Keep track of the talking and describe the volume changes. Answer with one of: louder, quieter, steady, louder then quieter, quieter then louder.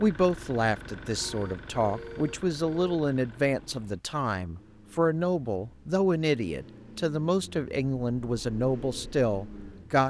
steady.